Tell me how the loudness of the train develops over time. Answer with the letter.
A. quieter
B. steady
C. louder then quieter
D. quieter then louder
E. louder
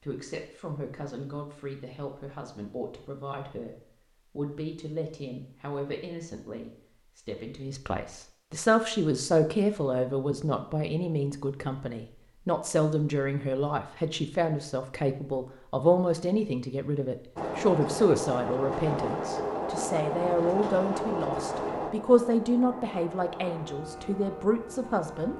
A.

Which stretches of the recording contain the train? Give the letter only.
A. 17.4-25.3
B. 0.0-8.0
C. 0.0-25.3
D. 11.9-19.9
A.